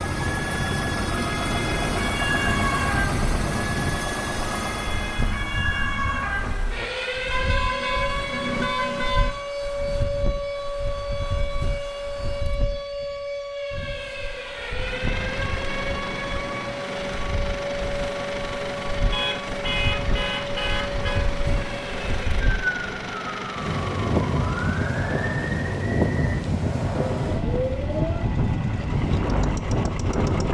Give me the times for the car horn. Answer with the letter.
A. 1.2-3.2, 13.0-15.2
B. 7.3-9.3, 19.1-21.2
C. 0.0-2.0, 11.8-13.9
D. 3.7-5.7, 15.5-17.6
B.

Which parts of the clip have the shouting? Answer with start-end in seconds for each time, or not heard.
not heard.